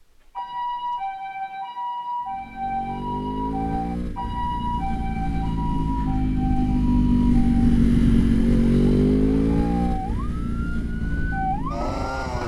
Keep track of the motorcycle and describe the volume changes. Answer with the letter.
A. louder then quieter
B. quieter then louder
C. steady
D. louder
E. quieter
A.